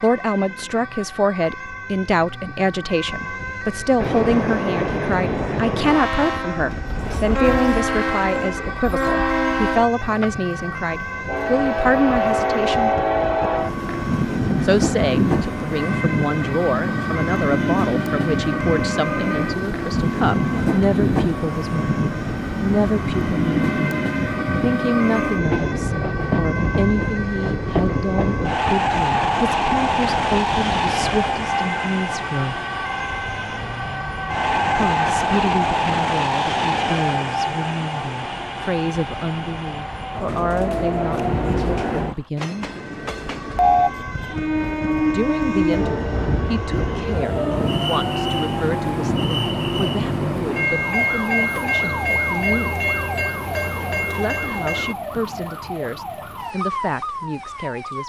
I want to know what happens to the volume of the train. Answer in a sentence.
The loudness of the train stays about the same.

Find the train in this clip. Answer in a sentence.
The train can be heard from 4.0 to 55.0 s.